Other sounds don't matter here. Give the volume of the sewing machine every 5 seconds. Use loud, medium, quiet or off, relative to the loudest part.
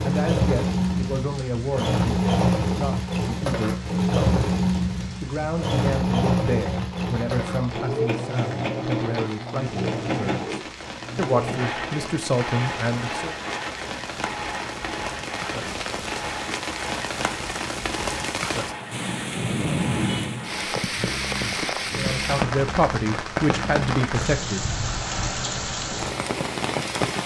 loud, loud, medium, quiet, quiet, quiet.